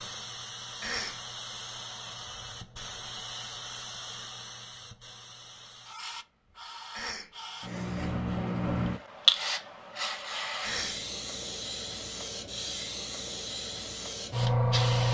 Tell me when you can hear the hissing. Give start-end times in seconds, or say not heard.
0.0-15.0.